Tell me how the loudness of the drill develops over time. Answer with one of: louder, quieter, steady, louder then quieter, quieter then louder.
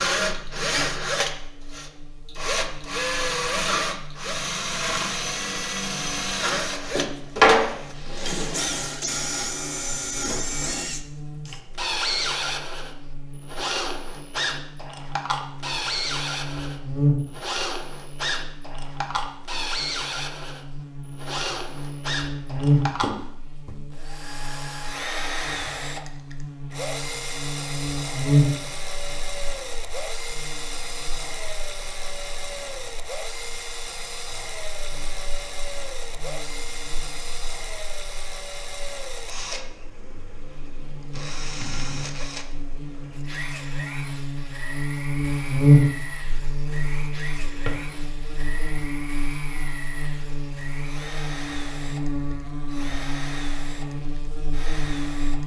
quieter.